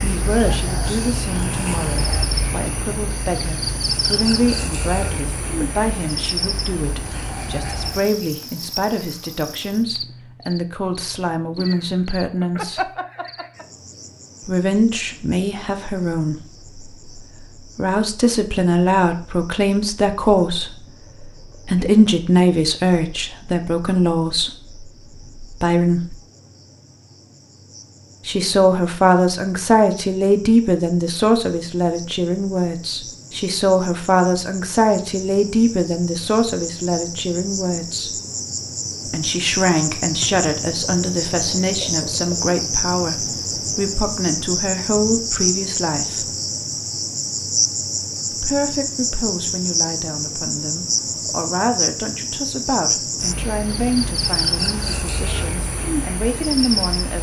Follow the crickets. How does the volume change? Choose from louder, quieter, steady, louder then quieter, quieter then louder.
quieter then louder.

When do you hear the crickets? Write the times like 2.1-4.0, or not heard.
0.0-57.1.